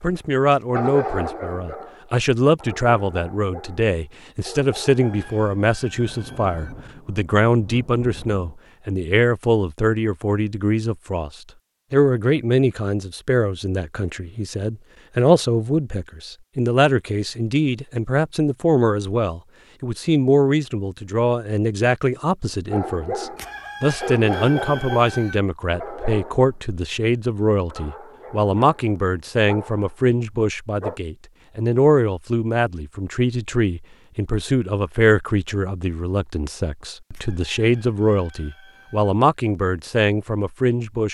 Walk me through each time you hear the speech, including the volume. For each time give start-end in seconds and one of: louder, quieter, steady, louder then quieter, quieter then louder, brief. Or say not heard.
0.0-11.3 steady
11.9-41.0 steady.